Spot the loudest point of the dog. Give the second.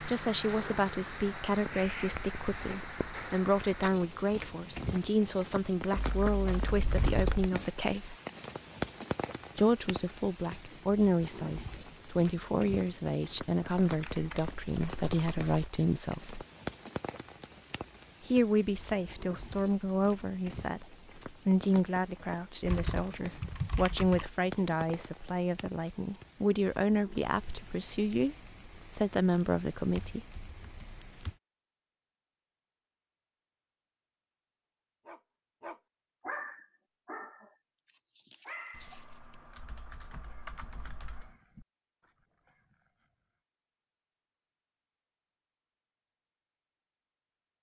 36 s.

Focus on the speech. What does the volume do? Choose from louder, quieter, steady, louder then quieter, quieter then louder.
steady.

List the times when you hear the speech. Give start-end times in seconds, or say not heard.
0.1-8.2, 9.6-16.4, 18.2-30.2.